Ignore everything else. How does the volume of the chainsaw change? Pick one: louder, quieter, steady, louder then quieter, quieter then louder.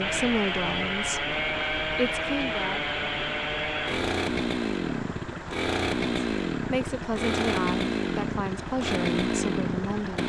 steady.